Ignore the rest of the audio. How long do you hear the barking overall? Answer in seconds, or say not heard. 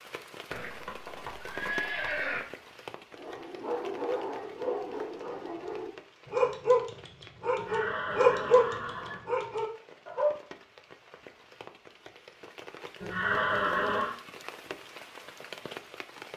7 s.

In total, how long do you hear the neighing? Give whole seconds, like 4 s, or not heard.
5 s.